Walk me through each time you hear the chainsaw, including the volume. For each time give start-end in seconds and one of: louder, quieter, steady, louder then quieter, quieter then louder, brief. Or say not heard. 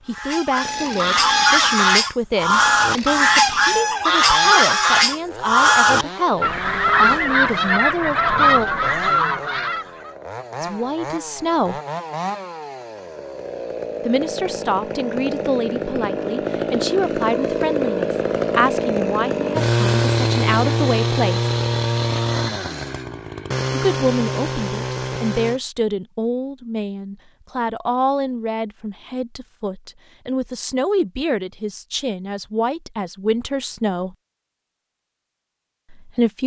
0.0-25.6 louder.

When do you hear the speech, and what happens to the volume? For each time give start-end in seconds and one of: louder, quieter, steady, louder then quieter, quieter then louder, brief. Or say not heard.
0.1-8.7 steady
10.6-11.8 brief
14.1-21.5 steady
23.7-34.1 steady
35.9-36.4 brief.